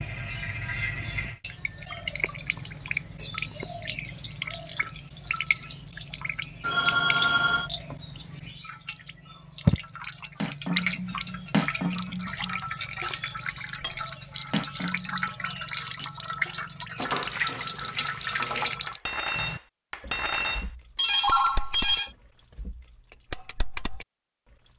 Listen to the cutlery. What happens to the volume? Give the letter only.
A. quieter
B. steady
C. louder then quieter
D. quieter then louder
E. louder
D.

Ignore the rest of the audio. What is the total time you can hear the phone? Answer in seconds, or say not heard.
2 s.